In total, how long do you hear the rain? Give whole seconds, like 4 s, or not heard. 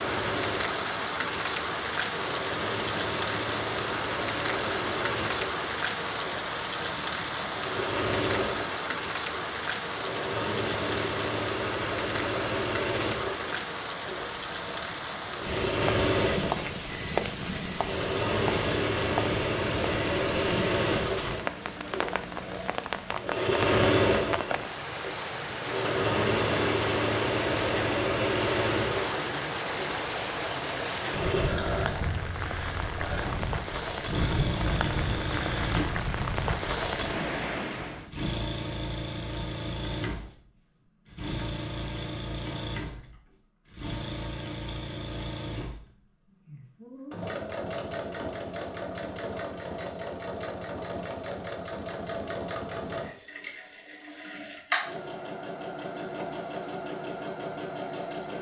38 s.